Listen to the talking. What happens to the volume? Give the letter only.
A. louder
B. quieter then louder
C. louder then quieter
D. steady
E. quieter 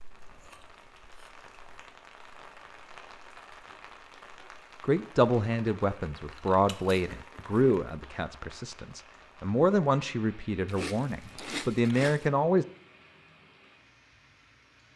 B.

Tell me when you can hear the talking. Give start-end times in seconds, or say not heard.
4.8-12.7.